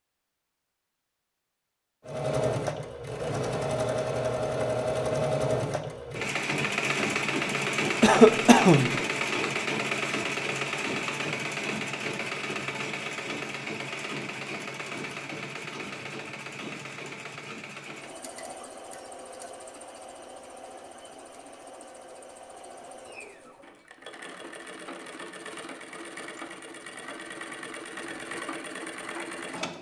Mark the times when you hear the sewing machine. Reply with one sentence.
The sewing machine can be heard from 2.0 to 29.7 s.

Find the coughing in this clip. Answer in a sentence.
The coughing can be heard from 8.0 to 9.0 s.